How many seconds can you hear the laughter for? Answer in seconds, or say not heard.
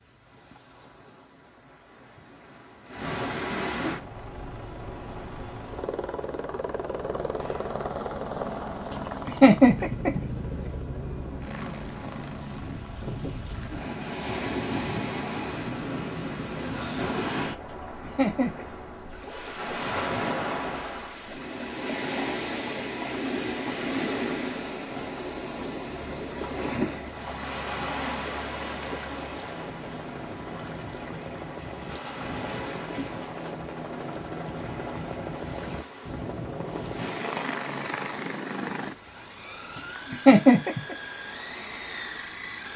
4 s.